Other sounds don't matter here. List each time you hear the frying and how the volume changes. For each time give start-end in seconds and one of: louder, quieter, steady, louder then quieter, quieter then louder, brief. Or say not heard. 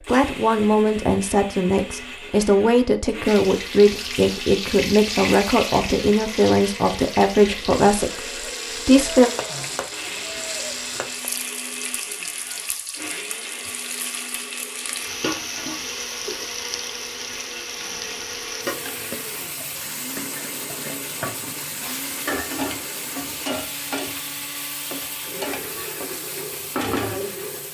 3.2-27.6 steady.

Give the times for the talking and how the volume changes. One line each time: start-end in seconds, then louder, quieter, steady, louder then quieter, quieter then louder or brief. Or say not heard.
0.0-9.3 steady.